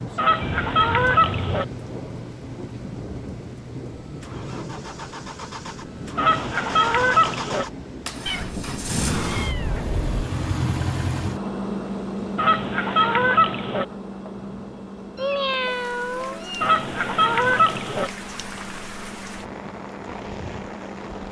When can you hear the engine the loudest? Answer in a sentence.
The volume of the engine peaks at 11 seconds.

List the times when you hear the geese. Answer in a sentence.
The geese can be heard from 0.1 to 1.6 s, from 6.2 to 7.7 s, from 12.3 to 13.8 s and from 16.6 to 18.1 s.